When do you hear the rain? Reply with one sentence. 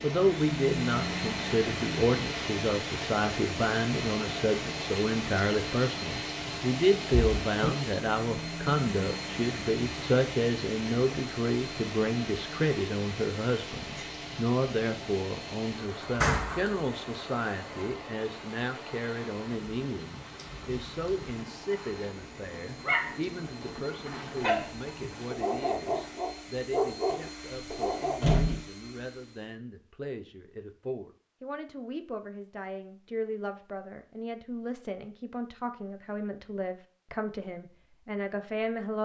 The rain can be heard from 0.0 to 26.1 s.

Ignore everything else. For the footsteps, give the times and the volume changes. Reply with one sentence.
You can't hear the footsteps here.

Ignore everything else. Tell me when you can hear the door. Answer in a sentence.
The door can be heard from 7.1 to 7.8 s, from 16.1 to 16.6 s and from 27.1 to 28.6 s.